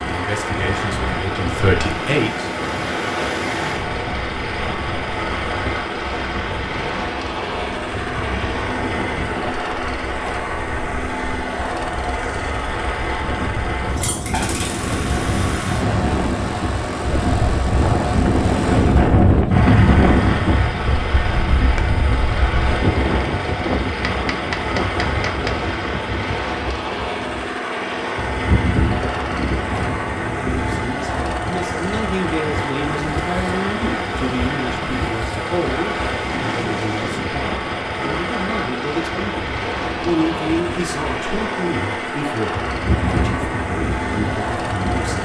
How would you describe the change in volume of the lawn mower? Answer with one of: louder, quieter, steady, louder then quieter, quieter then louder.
steady.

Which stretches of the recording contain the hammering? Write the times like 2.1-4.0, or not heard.
23.9-25.6.